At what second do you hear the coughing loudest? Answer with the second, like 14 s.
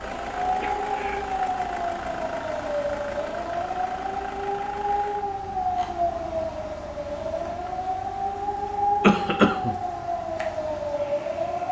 9 s.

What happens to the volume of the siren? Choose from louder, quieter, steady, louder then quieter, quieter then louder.
steady.